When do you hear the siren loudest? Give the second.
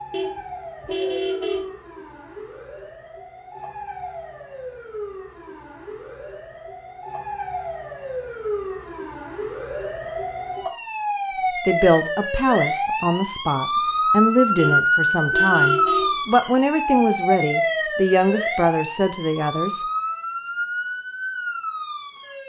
15 s.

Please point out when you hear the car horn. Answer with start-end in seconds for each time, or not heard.
0.1-1.8, 14.6-16.2.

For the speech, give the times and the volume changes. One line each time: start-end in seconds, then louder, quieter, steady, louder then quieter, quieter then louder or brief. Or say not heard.
11.5-19.9 steady.